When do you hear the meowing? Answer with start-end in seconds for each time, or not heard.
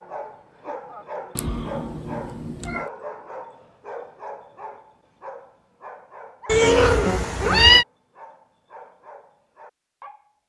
1.4-2.9, 6.5-7.8.